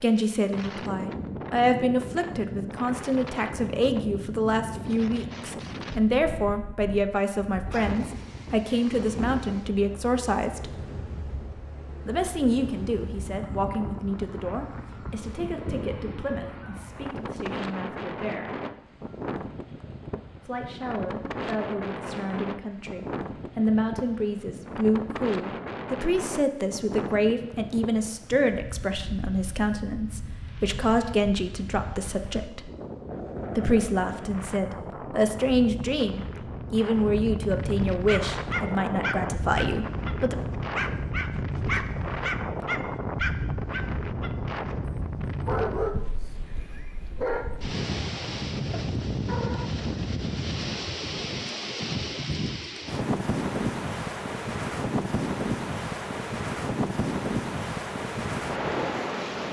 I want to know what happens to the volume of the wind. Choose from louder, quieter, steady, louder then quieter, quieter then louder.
louder.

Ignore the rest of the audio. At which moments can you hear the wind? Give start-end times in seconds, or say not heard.
0.0-59.4.